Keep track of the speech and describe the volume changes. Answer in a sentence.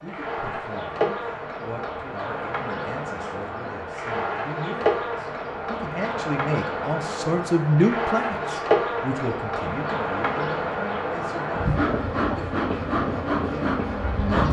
The loudness of the speech goes up, then down.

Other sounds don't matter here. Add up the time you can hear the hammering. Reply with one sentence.
The hammering can't be heard in this clip.